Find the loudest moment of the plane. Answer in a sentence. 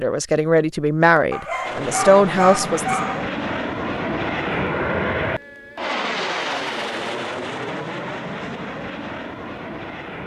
The loudest moment of the plane is at 5 seconds.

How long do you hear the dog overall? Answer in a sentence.
The dog can be heard for 2 seconds in total.